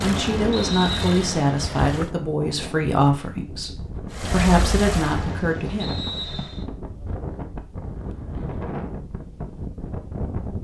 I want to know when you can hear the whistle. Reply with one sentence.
The whistle can be heard from 0.5 to 1.1 s and from 5.8 to 6.7 s.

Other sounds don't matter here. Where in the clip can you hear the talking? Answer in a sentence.
The talking can be heard from 0.0 to 5.9 s.